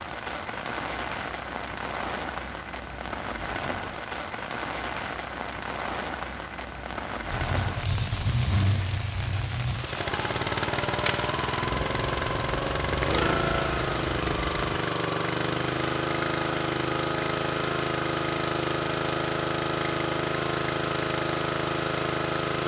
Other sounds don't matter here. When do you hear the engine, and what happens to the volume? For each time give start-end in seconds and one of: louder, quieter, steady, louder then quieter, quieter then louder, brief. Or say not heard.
7.3-22.6 steady.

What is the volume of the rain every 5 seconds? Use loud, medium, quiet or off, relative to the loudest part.
loud, loud, loud, off, off.